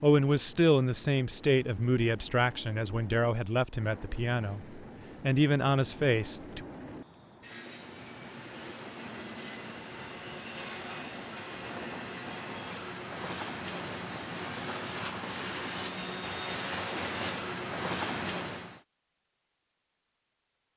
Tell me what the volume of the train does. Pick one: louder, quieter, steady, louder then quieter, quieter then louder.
louder.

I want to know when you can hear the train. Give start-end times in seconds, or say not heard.
0.0-18.8.